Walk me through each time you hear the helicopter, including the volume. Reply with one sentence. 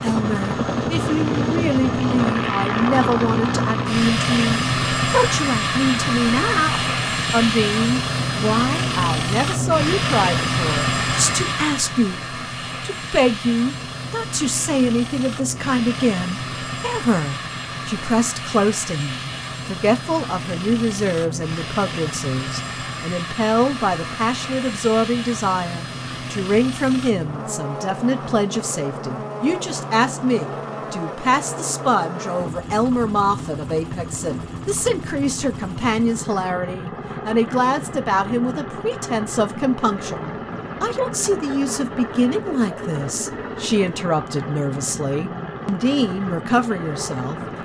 The helicopter can be heard from 0.0 to 47.6 s, getting quieter.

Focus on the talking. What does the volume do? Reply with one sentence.
The loudness of the talking stays about the same.